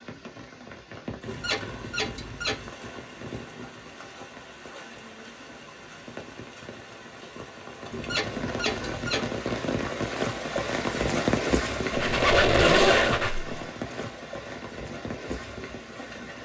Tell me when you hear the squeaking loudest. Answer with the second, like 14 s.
13 s.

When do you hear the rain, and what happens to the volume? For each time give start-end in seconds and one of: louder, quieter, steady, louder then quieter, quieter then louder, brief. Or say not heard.
0.0-16.4 louder then quieter.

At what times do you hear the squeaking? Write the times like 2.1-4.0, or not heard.
1.2-2.7, 7.9-9.2, 11.9-13.6.